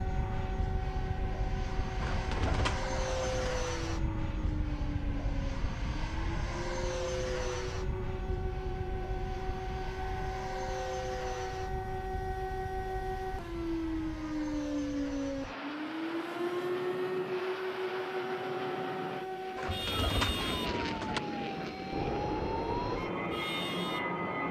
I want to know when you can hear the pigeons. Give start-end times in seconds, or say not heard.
2.0-3.5, 19.6-21.2.